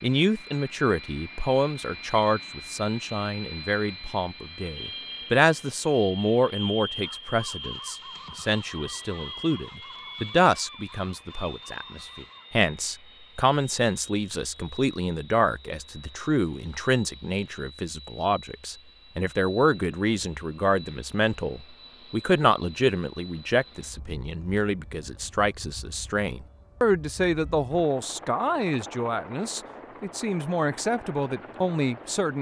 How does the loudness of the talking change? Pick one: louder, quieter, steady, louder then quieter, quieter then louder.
steady.